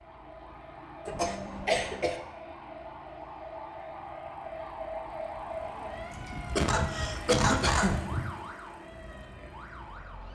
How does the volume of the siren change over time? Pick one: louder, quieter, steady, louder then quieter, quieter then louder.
louder then quieter.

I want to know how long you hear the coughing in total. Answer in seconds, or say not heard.
3 s.